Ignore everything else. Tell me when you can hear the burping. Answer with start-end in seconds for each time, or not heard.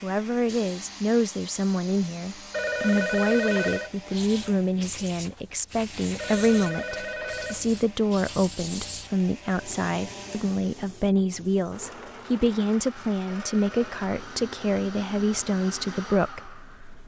not heard.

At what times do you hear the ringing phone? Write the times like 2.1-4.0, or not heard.
2.5-3.9, 6.2-7.8, 13.2-13.9.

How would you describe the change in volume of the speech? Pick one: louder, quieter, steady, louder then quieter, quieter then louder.
steady.